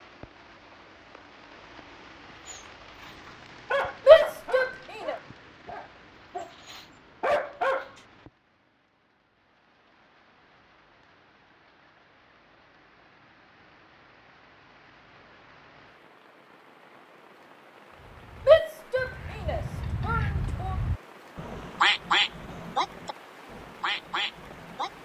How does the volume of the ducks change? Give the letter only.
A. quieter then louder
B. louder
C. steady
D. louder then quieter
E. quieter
D.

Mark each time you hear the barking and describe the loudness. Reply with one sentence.
The barking can be heard from 2.5 to 7.9 s, getting quieter then louder.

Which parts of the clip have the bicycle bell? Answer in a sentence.
You can't hear the bicycle bell here.